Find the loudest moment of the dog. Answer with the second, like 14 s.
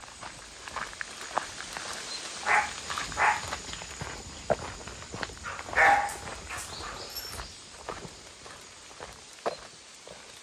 6 s.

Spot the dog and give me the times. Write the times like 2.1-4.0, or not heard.
2.5-3.5, 5.5-7.4.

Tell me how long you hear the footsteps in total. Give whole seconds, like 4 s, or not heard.
10 s.